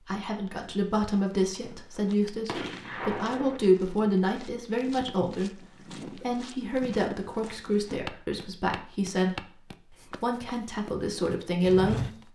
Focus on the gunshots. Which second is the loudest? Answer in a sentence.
The loudest moment of the gunshots is at 3 seconds.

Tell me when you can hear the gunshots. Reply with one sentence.
The gunshots can be heard from 1.7 to 3.6 s.